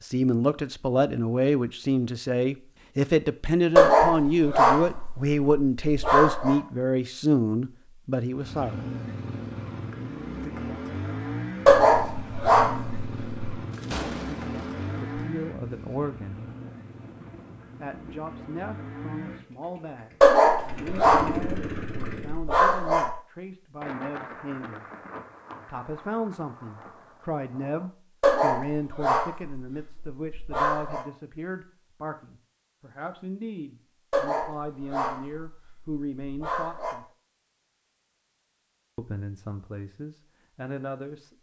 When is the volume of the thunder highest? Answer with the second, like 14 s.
14 s.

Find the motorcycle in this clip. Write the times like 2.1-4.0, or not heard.
8.3-22.4.